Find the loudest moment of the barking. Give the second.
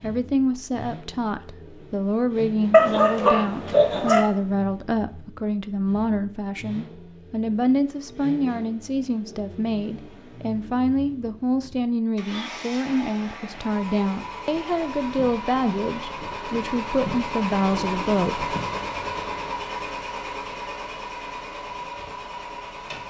3 s.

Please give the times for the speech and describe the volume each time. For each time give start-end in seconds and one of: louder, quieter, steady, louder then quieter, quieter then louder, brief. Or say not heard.
0.0-18.6 steady.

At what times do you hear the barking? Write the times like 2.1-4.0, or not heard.
2.7-4.3.